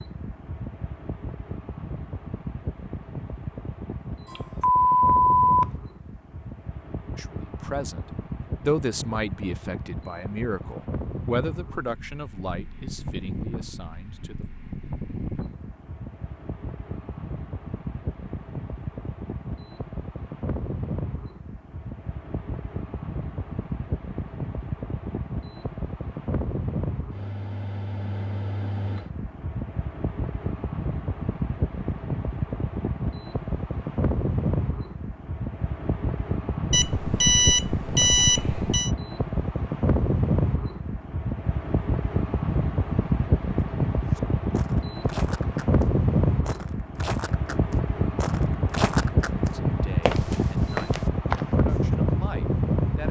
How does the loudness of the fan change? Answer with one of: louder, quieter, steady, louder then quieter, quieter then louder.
louder.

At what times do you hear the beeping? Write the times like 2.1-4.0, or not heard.
4.3-5.7, 36.7-38.9.